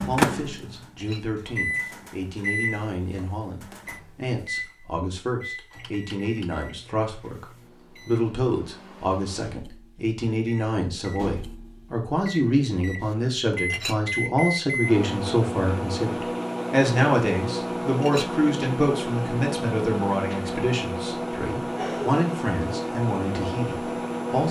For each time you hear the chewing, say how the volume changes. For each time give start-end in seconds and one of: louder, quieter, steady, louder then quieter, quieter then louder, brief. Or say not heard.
not heard.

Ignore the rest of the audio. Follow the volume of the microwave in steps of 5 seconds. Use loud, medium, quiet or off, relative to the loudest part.
loud, quiet, loud, loud, loud.